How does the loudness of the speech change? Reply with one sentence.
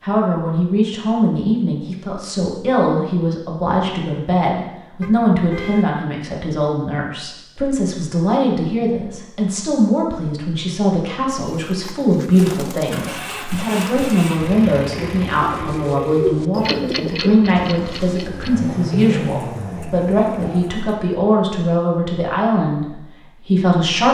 The volume of the speech stays about the same.